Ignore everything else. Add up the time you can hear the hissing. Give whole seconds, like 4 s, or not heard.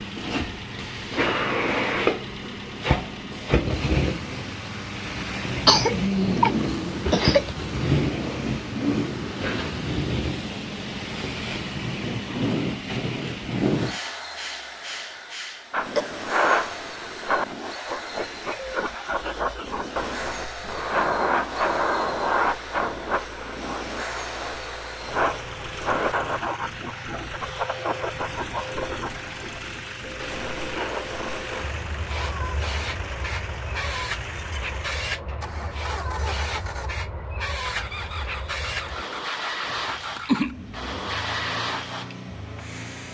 43 s.